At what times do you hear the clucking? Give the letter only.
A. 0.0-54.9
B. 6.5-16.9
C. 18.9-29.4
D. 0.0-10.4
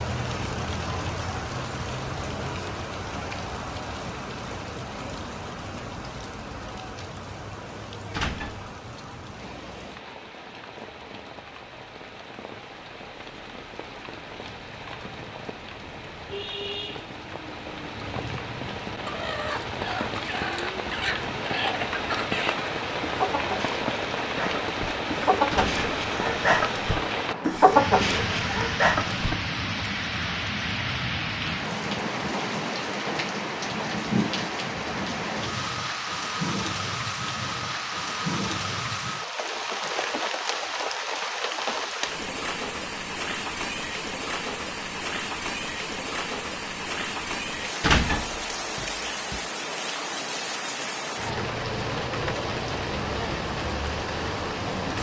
C.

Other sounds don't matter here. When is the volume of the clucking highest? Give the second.
28 s.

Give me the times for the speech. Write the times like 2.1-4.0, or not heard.
not heard.